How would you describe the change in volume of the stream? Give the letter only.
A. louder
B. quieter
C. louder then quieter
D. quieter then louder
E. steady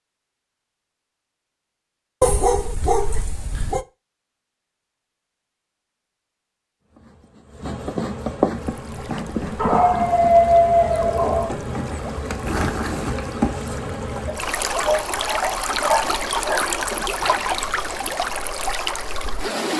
A.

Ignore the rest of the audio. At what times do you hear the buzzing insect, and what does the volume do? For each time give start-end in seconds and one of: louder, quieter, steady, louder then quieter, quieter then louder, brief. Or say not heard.
6.8-17.9 quieter.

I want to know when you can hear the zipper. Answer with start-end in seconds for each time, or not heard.
2.8-3.4, 12.4-13.5.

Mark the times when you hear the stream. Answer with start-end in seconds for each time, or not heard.
8.5-19.7.